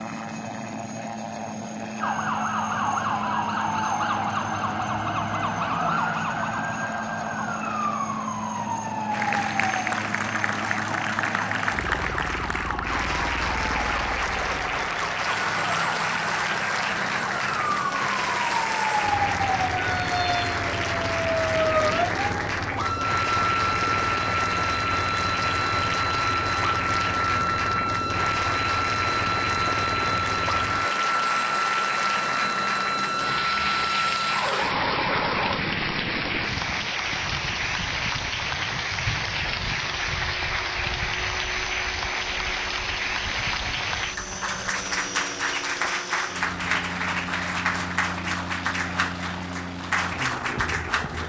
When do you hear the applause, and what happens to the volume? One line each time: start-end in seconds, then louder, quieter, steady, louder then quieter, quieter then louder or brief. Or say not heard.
9.1-51.2 steady.